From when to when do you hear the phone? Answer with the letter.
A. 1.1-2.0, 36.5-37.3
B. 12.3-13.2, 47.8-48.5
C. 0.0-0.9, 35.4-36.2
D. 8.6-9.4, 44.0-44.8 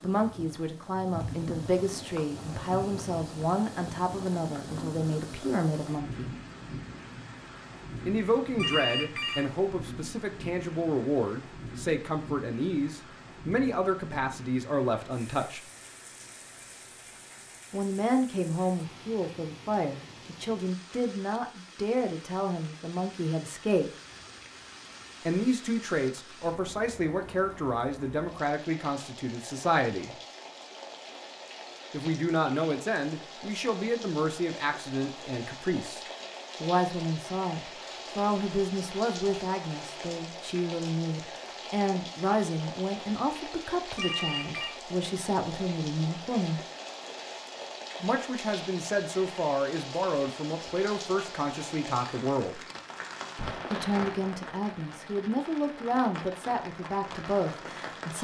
D.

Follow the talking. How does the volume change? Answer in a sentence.
The volume of the talking stays about the same.